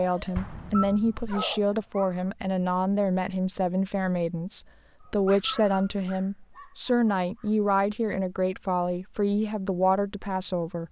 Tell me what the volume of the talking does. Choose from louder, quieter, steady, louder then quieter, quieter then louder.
steady.